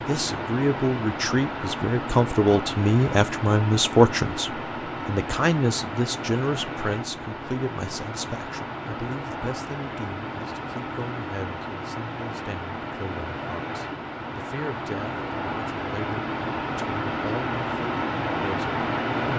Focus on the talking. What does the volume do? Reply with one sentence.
The volume of the talking goes down.